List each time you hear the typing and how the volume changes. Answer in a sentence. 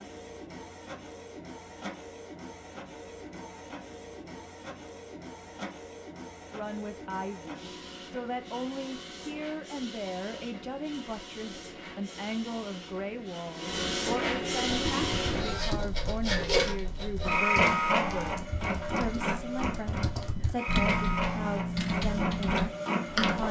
You can hear the typing from 14.8 to 23.4 s, getting quieter then louder.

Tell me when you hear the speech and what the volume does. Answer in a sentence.
The speech can be heard from 6.5 to 23.4 s, at a steady volume.